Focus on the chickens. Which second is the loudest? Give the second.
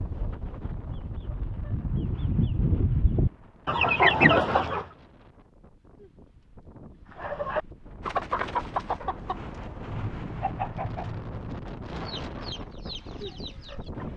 4 s.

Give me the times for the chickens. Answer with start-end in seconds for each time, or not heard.
0.0-4.8, 7.2-14.1.